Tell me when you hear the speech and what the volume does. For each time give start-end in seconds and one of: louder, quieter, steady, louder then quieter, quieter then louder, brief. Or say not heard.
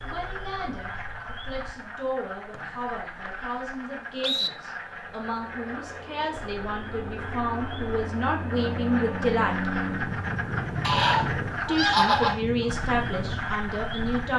0.0-9.7 louder
11.7-14.3 brief.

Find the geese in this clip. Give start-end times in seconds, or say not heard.
10.8-12.7.